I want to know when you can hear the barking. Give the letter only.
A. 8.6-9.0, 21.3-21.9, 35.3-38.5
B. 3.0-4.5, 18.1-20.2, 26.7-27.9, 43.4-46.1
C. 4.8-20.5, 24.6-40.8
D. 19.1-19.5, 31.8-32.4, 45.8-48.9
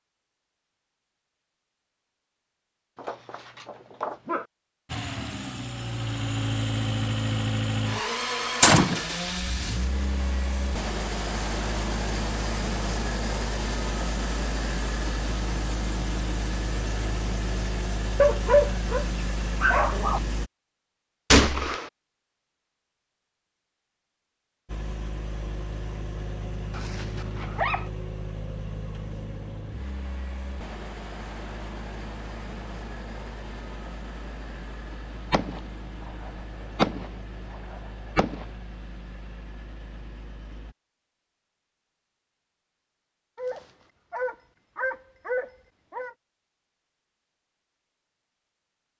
B.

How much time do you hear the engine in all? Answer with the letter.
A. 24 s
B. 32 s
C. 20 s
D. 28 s
B.